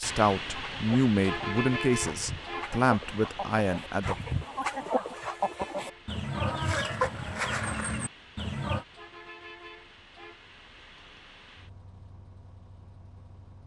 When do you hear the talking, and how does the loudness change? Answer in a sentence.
The talking can be heard from 0.0 to 4.3 s, at a steady volume.